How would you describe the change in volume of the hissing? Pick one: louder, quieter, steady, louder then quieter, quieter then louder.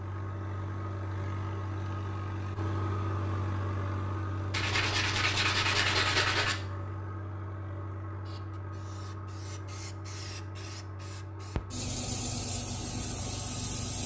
louder.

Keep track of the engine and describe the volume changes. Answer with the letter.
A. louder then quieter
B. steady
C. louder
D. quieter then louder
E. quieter
E.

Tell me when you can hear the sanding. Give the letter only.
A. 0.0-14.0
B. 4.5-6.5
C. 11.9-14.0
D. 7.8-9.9
B.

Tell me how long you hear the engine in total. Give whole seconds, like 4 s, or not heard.
14 s.